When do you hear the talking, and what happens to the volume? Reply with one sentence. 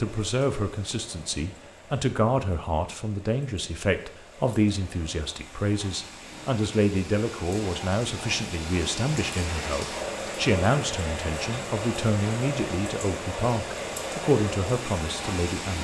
You can hear the talking from 0.0 to 15.7 s, at a steady volume.